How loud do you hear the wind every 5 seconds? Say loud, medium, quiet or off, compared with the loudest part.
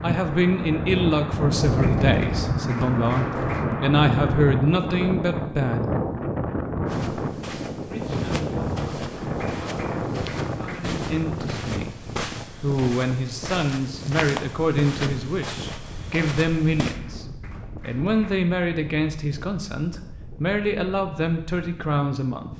loud, loud, medium, quiet, quiet.